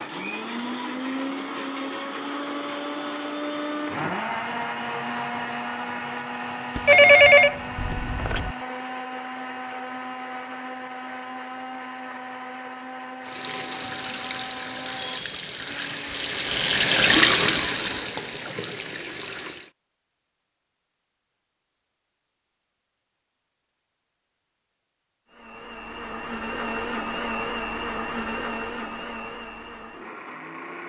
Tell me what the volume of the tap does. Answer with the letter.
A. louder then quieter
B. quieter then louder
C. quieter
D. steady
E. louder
A.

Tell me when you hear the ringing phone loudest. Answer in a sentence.
The volume of the ringing phone peaks at 7 seconds.